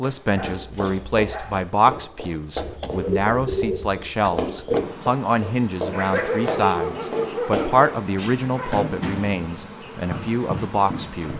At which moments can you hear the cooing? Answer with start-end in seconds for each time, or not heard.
2.5-4.8.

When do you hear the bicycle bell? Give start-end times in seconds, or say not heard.
not heard.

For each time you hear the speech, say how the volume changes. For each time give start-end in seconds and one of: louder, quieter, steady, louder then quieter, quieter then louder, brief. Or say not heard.
0.0-11.3 steady.